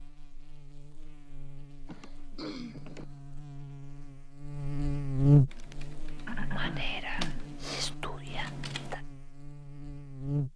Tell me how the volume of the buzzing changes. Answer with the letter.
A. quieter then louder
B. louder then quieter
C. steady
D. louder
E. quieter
B.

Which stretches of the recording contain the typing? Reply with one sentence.
The typing can be heard from 5.5 to 8.9 s.